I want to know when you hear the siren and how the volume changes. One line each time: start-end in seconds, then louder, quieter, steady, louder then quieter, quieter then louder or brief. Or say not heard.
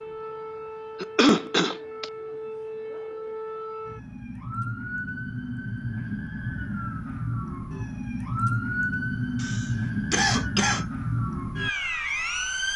0.0-12.7 louder.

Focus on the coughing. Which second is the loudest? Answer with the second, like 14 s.
1 s.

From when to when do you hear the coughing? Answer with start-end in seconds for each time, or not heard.
1.0-2.0, 9.4-10.8.